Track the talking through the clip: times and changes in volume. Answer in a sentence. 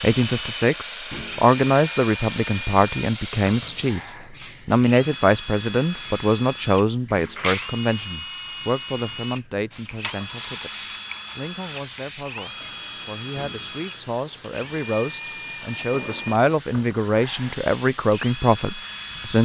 You can hear the talking from 0.0 to 19.4 s, getting quieter then louder.